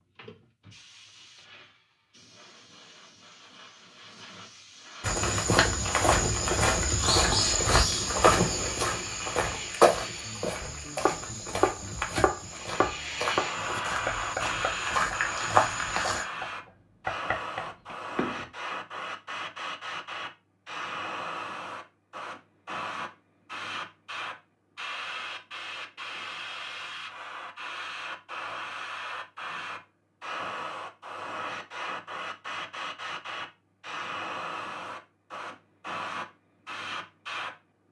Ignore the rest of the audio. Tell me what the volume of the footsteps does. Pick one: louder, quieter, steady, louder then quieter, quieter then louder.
quieter then louder.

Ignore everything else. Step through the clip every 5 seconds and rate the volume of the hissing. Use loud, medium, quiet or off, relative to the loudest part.
quiet, medium, loud, loud, loud, loud, loud, loud.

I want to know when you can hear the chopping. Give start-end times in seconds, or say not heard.
10.2-18.4.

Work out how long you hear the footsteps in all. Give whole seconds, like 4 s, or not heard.
11 s.